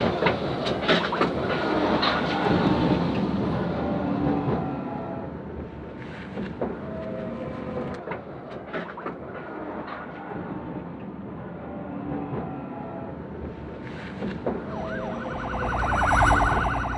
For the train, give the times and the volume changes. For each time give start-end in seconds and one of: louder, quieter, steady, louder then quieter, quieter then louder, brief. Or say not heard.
0.0-16.9 quieter.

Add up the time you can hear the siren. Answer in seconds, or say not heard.
2 s.